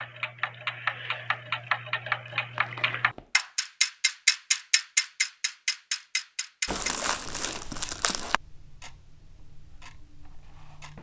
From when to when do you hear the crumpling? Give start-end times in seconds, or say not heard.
1.1-3.5, 6.7-8.4.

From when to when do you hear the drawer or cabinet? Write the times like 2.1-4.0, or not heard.
not heard.